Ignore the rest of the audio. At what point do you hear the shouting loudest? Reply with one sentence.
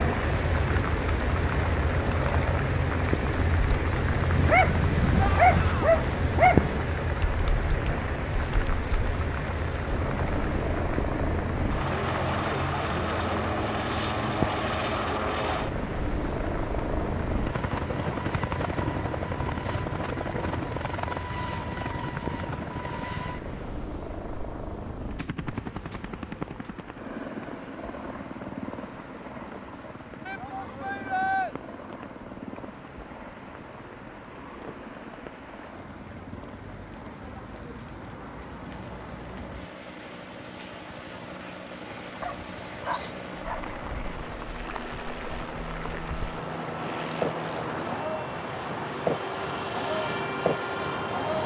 The loudest moment of the shouting is at 31 seconds.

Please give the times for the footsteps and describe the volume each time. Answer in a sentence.
The footsteps can't be heard in this clip.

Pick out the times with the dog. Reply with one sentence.
The dog can be heard from 4.3 to 6.8 s and from 42.2 to 43.7 s.